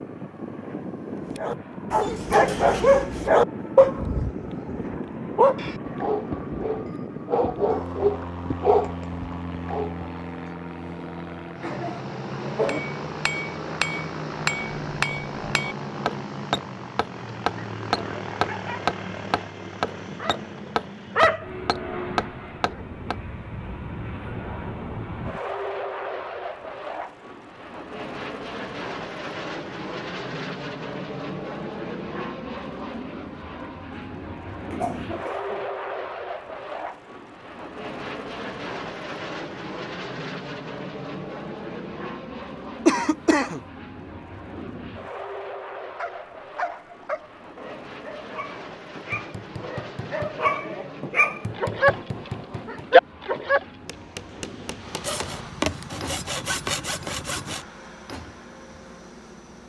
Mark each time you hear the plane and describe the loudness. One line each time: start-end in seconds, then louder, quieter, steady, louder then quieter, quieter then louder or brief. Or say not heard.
0.0-59.6 quieter.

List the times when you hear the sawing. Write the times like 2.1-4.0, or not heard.
55.0-57.6.